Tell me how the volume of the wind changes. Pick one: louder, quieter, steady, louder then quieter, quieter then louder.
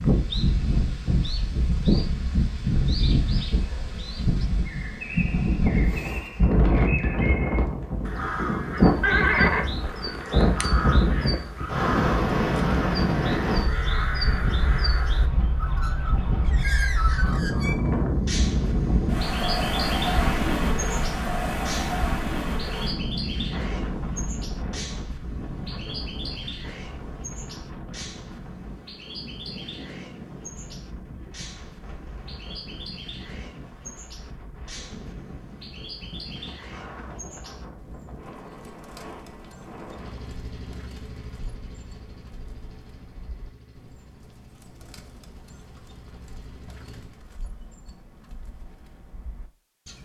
quieter.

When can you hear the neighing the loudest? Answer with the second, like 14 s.
9 s.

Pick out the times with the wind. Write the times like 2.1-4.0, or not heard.
0.0-40.3.